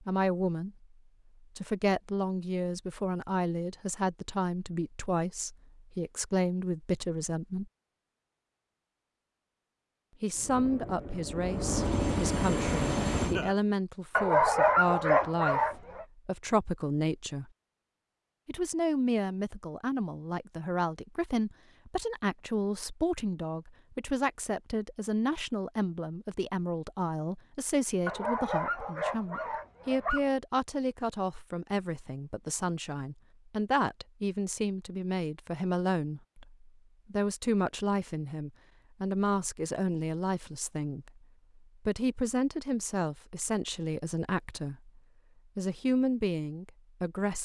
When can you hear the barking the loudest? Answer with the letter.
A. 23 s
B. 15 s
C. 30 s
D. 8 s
B.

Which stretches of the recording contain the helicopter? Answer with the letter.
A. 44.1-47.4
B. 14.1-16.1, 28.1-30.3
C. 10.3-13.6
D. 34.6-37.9
C.